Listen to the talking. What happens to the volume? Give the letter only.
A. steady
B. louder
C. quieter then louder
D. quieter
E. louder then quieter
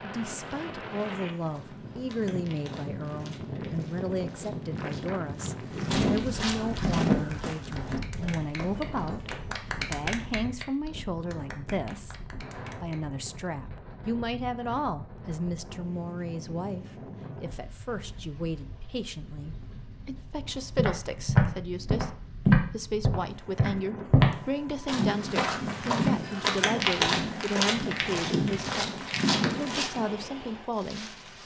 A.